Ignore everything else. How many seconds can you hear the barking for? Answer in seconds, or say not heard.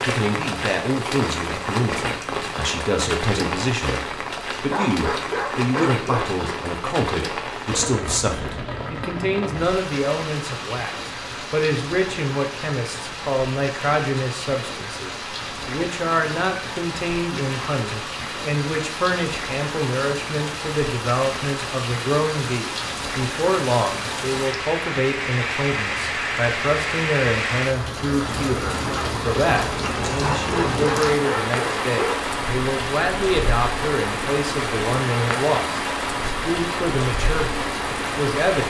4 s.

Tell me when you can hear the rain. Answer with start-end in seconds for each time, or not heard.
0.0-38.6.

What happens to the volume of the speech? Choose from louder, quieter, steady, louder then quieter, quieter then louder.
steady.